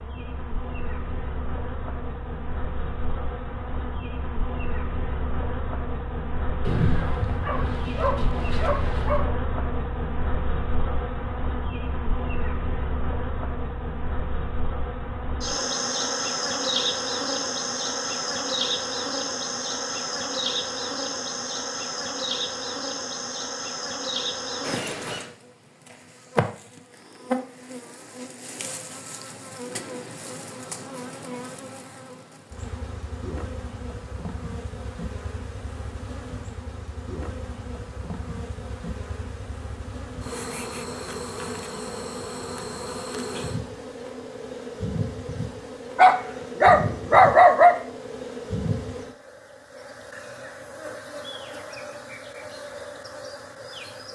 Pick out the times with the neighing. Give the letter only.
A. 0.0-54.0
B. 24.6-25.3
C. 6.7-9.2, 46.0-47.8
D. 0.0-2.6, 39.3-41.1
B.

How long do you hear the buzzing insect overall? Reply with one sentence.
The buzzing insect can be heard for 54 seconds in total.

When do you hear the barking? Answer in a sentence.
The barking can be heard from 6.7 to 9.2 s and from 46.0 to 47.8 s.